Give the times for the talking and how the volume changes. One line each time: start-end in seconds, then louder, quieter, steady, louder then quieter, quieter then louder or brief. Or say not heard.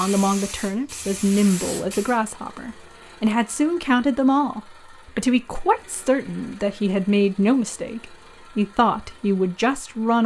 0.0-10.2 steady.